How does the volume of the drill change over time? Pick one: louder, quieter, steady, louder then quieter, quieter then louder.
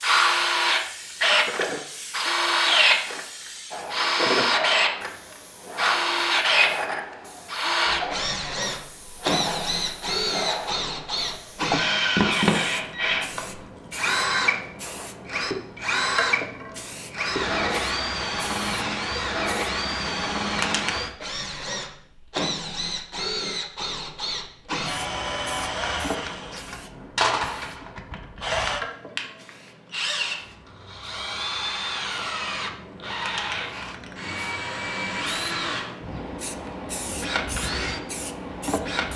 quieter.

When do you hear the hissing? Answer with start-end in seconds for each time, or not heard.
0.0-21.1, 24.9-39.1.